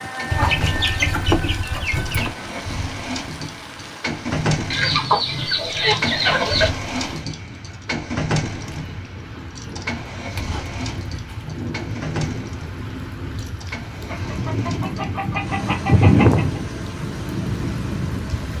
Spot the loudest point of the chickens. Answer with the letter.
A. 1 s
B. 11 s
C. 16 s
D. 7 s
C.